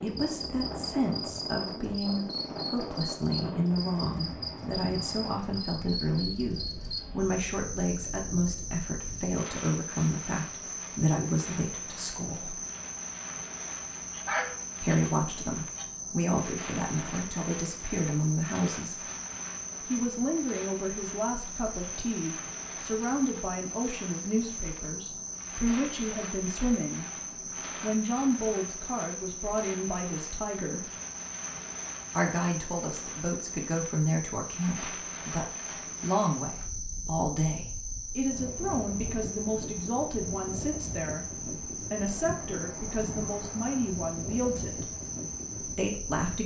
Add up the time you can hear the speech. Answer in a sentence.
The speech can be heard for 41 seconds in total.